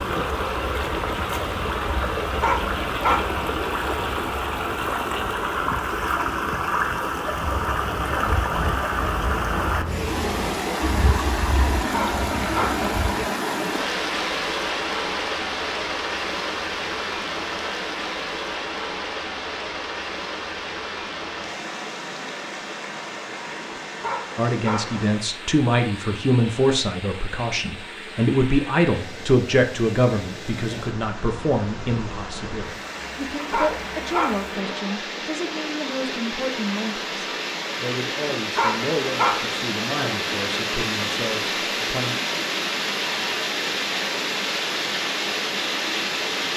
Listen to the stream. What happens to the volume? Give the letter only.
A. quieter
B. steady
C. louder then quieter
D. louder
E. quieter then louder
E.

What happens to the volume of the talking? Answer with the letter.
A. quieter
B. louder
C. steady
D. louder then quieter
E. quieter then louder
A.